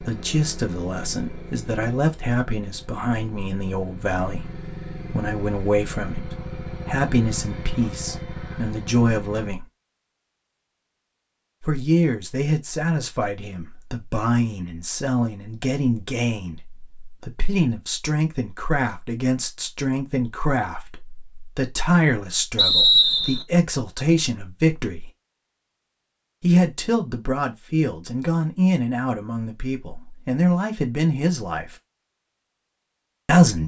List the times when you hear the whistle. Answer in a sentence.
You can hear the whistle from 22.6 to 23.4 s.